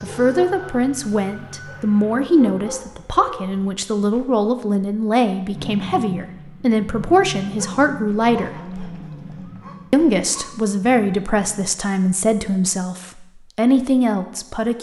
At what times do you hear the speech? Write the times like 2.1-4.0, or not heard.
0.0-8.5, 9.9-14.7.